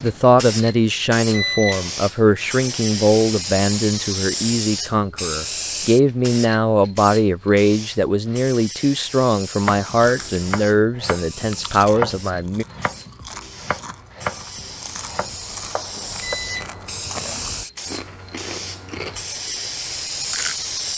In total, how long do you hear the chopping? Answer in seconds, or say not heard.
7 s.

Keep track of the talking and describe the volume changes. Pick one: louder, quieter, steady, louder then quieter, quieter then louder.
steady.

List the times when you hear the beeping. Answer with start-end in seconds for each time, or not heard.
1.3-1.9, 16.2-16.8.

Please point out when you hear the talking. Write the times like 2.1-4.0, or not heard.
0.0-12.7.